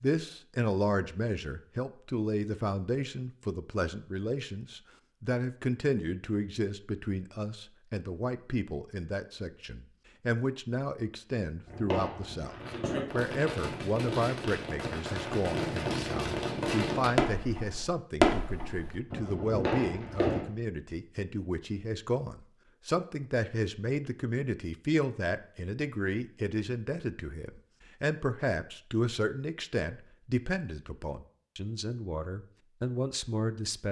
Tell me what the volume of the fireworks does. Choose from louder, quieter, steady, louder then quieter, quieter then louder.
louder then quieter.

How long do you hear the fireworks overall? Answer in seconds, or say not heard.
9 s.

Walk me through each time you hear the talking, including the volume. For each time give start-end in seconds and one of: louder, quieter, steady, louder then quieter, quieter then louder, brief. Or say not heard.
0.0-33.8 steady.